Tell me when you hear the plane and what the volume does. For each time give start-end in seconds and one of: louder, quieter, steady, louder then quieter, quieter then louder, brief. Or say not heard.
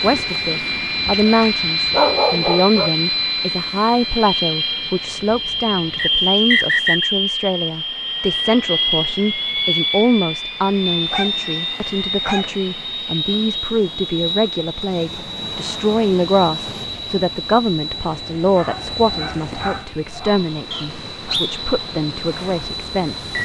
0.0-23.4 quieter.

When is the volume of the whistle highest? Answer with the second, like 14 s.
7 s.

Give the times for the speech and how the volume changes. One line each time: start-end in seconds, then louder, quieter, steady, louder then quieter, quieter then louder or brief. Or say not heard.
0.0-23.4 steady.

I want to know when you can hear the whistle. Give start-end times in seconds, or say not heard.
6.0-7.1, 20.7-21.6.